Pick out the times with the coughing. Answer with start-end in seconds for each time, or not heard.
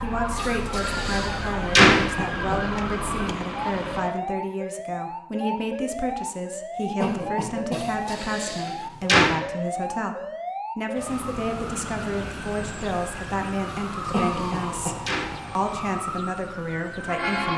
2.0-2.6, 7.0-7.8, 14.1-15.0.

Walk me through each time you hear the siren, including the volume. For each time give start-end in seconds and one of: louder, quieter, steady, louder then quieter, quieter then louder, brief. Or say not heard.
0.0-17.5 steady.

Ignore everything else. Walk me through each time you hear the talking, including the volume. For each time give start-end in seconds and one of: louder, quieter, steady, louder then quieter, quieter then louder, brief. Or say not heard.
0.0-10.2 steady
10.8-17.5 steady.